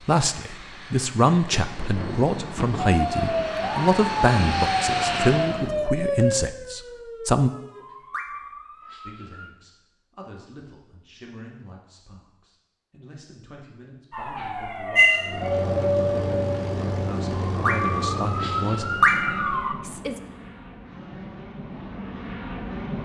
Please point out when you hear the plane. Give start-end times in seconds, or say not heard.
0.0-5.7, 15.2-23.0.